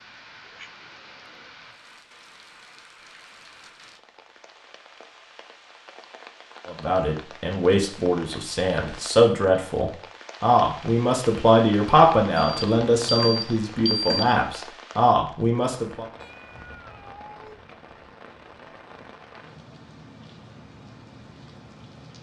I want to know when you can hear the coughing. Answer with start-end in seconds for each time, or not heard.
not heard.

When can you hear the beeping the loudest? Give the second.
14 s.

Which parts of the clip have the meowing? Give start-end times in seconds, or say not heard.
0.5-1.6, 16.1-17.6.